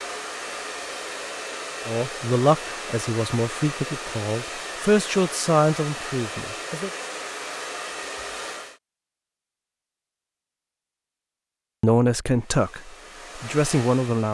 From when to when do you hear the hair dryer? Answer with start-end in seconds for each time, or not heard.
0.0-8.8, 12.3-14.2.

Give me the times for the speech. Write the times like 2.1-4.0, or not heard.
1.9-6.9, 11.8-14.2.